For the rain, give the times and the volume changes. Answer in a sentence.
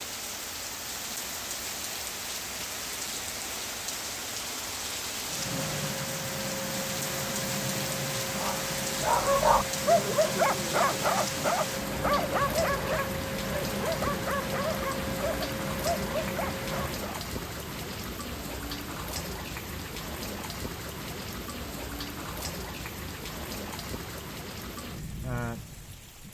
You can hear the rain from 0.0 to 26.2 s, at a steady volume.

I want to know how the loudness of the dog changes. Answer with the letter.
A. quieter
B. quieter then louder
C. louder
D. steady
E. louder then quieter
A.